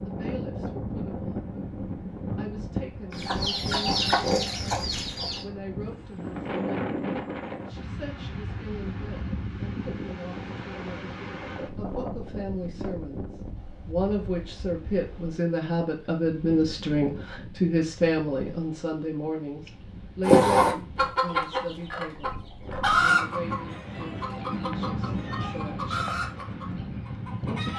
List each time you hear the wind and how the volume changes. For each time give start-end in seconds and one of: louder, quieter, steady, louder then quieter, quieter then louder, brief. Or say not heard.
0.0-27.7 quieter then louder.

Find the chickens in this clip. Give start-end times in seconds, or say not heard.
3.1-5.5, 20.2-27.7.